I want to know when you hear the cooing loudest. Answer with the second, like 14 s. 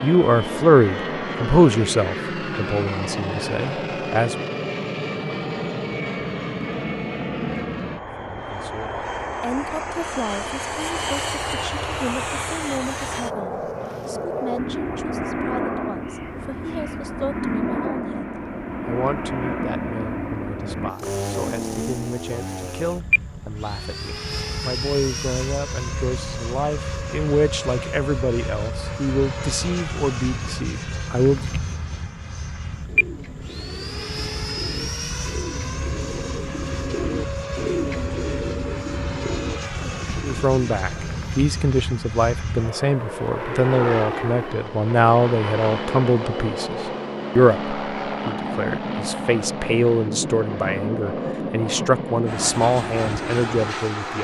38 s.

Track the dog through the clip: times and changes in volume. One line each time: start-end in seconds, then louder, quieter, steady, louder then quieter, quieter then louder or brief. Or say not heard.
not heard.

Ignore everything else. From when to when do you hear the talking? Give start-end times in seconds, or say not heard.
0.0-4.3, 8.2-31.5, 40.2-54.1.